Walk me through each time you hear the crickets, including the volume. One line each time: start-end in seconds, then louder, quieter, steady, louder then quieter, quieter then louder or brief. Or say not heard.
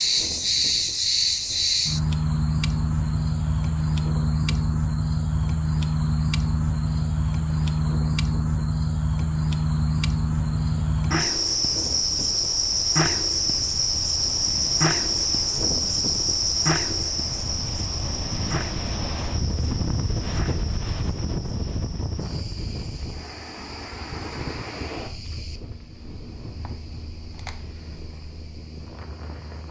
0.0-29.6 quieter.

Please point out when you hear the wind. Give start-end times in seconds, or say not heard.
0.0-29.6.